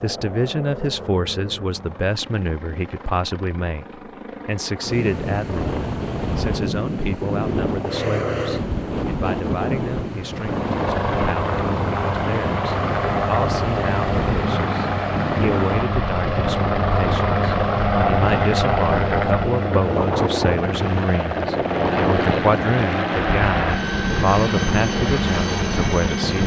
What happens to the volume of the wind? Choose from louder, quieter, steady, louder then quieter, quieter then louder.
steady.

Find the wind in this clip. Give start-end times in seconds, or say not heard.
4.8-26.4.